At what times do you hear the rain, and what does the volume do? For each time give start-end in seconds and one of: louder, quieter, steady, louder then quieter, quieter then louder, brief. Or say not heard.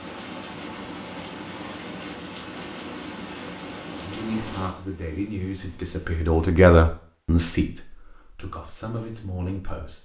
0.0-6.5 quieter.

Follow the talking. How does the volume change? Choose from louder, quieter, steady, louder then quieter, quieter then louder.
louder then quieter.